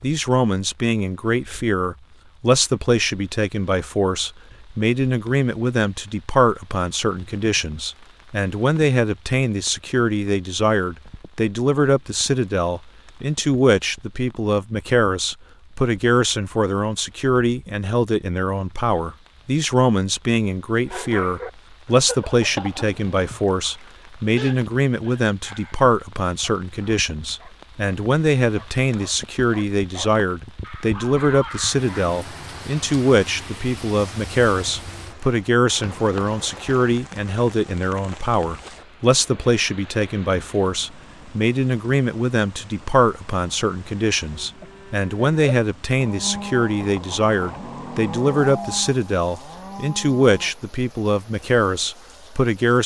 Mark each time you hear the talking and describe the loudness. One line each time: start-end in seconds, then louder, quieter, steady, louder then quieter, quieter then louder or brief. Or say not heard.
0.0-52.8 steady.